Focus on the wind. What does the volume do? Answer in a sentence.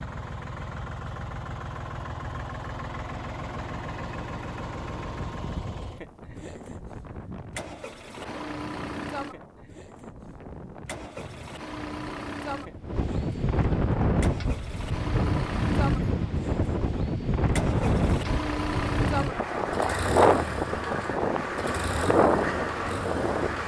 The loudness of the wind goes up.